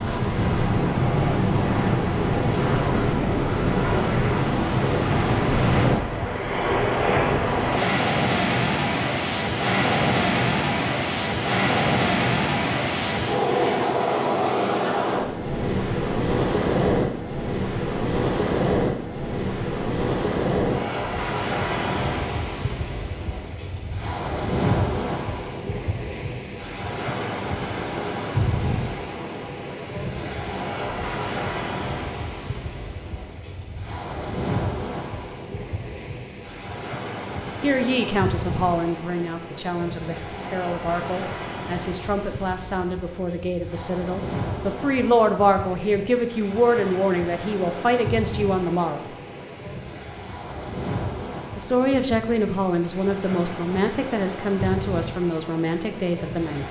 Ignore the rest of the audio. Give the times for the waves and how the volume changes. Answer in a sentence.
You can hear the waves from 0.0 to 56.6 s, getting quieter.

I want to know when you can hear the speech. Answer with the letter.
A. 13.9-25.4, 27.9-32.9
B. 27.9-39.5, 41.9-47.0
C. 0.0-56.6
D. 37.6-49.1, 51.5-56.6
D.